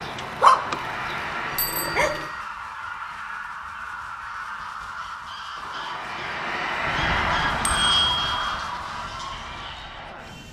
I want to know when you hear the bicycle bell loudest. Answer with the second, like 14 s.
8 s.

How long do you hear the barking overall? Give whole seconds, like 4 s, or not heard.
2 s.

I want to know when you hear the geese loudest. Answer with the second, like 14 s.
8 s.